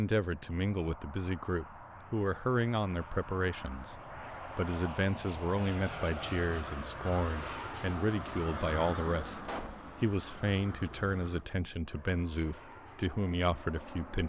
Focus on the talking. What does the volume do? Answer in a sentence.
The volume of the talking stays about the same.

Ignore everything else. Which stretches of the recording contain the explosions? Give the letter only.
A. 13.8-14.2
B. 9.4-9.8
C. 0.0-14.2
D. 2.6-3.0
B.